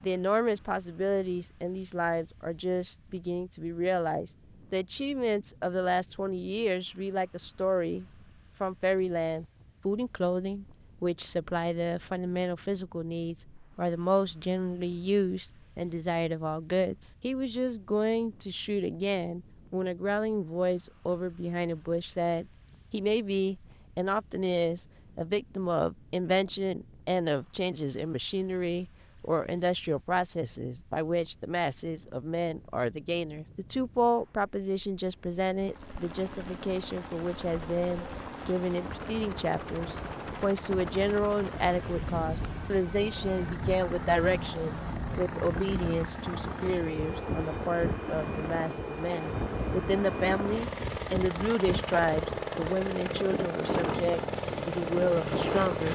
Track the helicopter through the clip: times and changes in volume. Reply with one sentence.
You can hear the helicopter from 35.5 to 55.8 s, getting louder.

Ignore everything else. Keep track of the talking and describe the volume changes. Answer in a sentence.
The volume of the talking stays about the same.